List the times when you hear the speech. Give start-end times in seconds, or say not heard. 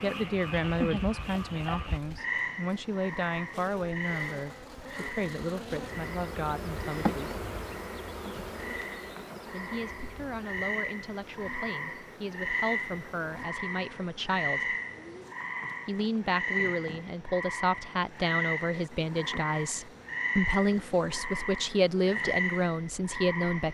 0.0-7.4, 9.5-14.8, 15.8-23.6.